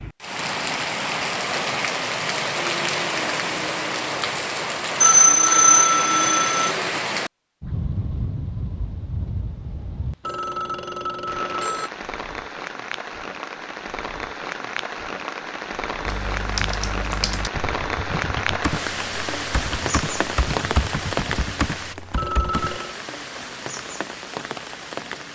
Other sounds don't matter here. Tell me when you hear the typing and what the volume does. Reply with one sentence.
You can hear the typing from 16.0 to 22.8 s, at a steady volume.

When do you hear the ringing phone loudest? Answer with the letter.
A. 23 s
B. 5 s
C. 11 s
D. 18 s
B.